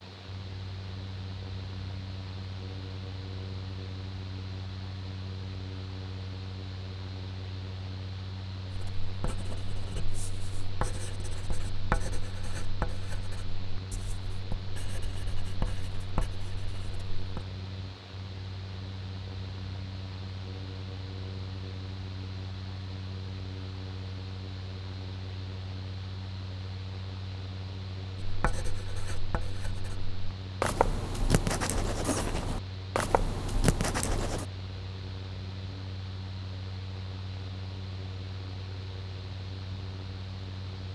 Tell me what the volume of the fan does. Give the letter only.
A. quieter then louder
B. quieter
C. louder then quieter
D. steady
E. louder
D.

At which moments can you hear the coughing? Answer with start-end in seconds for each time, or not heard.
not heard.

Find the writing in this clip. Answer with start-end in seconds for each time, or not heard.
8.7-17.4, 28.2-34.5.